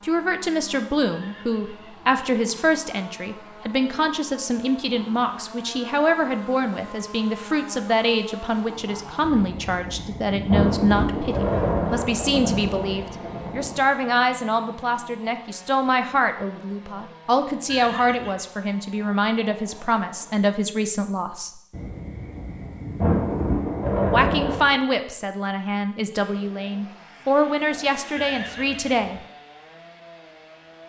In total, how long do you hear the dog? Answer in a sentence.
You can't hear the dog here.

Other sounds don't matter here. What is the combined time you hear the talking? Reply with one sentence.
The talking can be heard for 27 seconds in total.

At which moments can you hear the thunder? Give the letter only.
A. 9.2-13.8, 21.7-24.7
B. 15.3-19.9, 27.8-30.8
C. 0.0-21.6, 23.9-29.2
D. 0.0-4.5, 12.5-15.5
A.